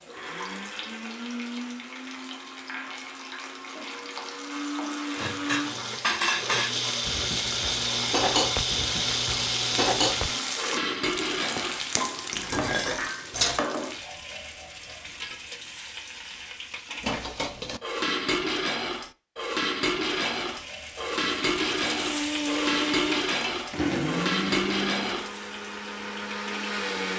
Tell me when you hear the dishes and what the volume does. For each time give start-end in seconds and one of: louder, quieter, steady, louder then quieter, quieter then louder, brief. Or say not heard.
5.2-13.7 steady
17.0-25.3 steady.